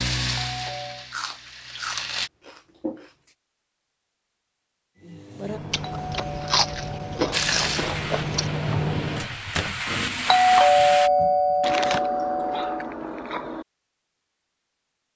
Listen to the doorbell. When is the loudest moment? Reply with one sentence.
The loudest moment of the doorbell is at 11 seconds.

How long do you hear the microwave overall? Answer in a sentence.
The microwave can be heard for 7 seconds in total.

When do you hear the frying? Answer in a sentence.
The frying can be heard from 0.0 to 2.3 s and from 7.3 to 11.1 s.